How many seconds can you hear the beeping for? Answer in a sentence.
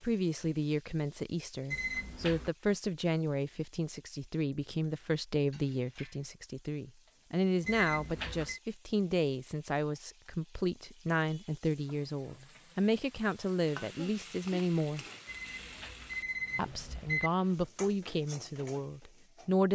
You can hear the beeping for 4 seconds altogether.